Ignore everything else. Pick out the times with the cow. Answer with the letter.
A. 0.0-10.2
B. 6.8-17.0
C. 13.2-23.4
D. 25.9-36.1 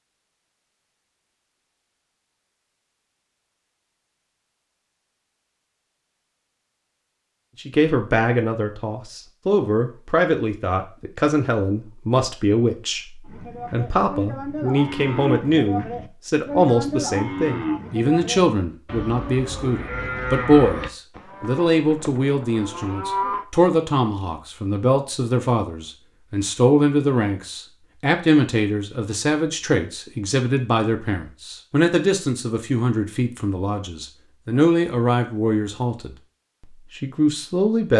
C.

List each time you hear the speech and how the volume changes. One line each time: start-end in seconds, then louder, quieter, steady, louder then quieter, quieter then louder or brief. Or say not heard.
7.6-37.9 steady.